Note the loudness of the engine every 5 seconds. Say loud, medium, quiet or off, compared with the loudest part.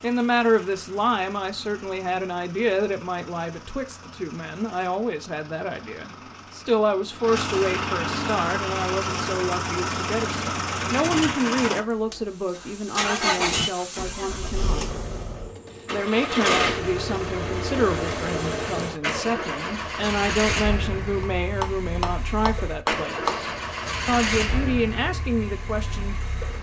quiet, loud, loud, loud, loud, medium.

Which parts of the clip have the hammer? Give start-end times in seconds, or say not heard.
21.2-23.4.